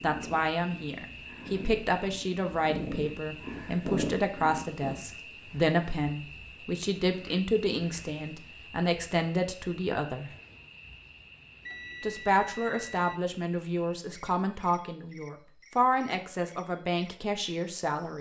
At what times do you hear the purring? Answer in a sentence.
The purring can be heard from 0.0 to 5.0 s.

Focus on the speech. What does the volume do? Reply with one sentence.
The volume of the speech stays about the same.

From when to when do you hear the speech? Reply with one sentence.
You can hear the speech from 0.0 to 10.3 s and from 12.0 to 18.1 s.